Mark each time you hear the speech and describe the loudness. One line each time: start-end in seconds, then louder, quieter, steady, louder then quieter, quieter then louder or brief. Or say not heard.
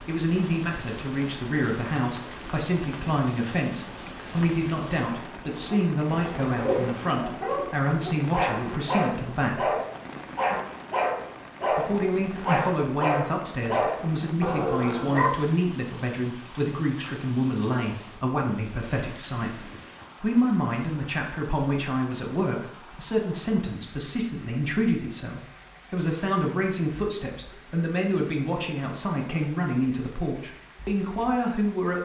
0.1-9.8 steady
11.7-31.9 steady.